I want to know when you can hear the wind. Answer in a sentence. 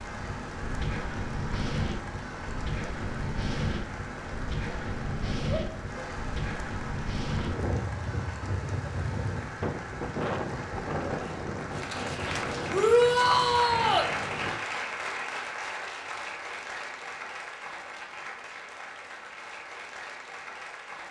You can hear the wind from 0.0 to 14.6 s.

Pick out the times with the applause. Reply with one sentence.
The applause can be heard from 0.0 to 21.0 s.